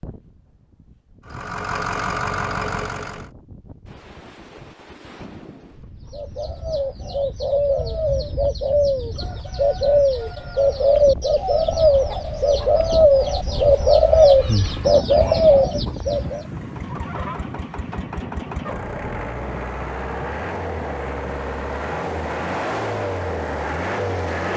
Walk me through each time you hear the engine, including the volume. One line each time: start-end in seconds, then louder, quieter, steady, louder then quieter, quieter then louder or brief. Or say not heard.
1.2-3.3 brief
16.4-24.5 louder.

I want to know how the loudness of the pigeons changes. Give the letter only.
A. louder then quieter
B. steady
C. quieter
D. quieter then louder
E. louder
E.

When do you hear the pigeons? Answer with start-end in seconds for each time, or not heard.
6.0-16.4.